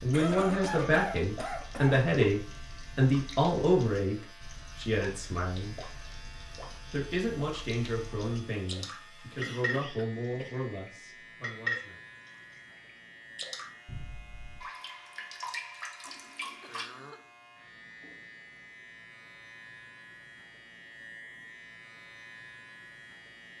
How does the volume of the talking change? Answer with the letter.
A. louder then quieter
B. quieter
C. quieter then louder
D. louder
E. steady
B.